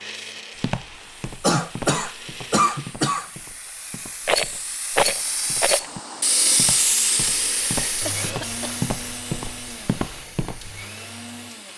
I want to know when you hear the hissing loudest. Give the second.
7 s.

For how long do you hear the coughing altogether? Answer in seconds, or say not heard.
3 s.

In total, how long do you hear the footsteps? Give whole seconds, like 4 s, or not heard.
10 s.